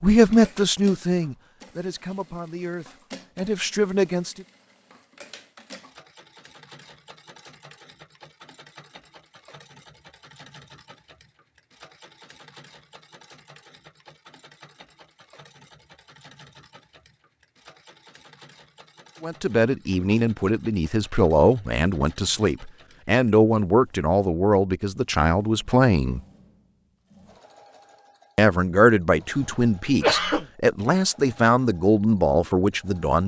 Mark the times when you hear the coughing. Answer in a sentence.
You can hear the coughing from 29.3 to 30.4 s.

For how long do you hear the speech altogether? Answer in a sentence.
The speech can be heard for 16 seconds in total.